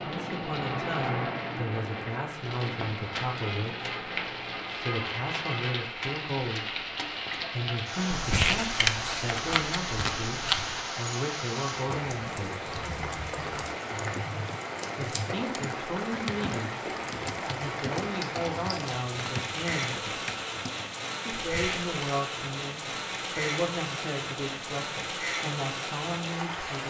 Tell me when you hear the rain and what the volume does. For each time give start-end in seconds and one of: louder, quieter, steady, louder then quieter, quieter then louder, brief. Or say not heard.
0.0-26.8 steady.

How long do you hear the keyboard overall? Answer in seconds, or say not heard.
8 s.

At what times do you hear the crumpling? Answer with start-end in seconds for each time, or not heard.
8.1-10.8, 21.4-21.9.